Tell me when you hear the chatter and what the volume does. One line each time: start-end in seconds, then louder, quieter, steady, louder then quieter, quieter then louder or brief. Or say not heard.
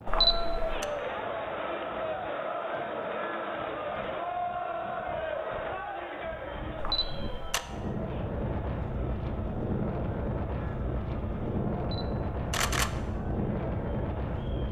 0.0-14.6 quieter.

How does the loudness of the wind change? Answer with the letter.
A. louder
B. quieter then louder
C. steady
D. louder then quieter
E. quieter
A.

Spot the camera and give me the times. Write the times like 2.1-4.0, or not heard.
0.1-0.8, 6.8-7.6, 11.8-13.0.